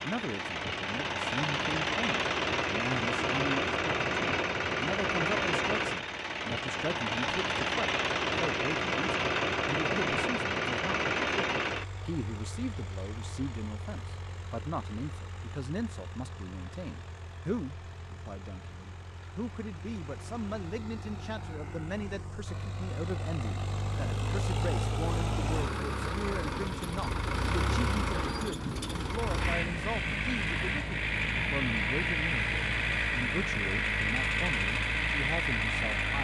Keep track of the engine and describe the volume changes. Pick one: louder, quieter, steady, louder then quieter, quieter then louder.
quieter then louder.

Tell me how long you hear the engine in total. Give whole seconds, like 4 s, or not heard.
36 s.